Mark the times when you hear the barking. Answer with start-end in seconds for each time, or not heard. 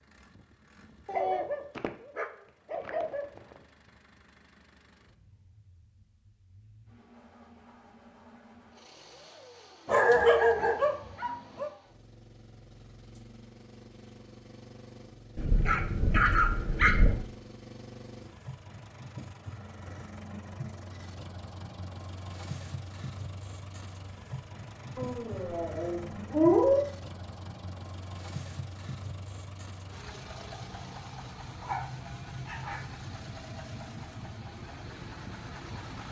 1.1-3.5, 9.8-11.7, 15.3-17.2, 24.9-26.9, 31.6-32.9.